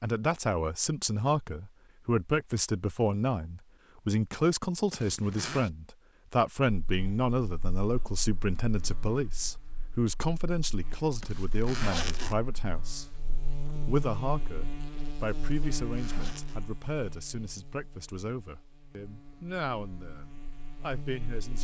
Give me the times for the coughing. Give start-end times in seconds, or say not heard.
not heard.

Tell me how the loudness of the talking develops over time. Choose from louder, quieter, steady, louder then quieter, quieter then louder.
quieter.